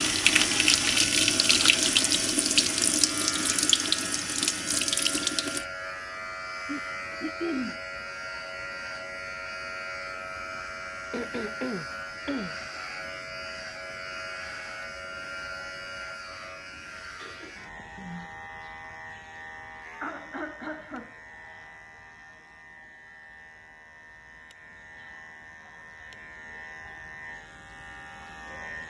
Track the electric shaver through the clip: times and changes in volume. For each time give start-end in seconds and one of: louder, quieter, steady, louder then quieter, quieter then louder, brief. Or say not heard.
0.0-28.8 quieter.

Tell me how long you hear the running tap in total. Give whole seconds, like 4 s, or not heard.
6 s.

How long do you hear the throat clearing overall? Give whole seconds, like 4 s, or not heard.
4 s.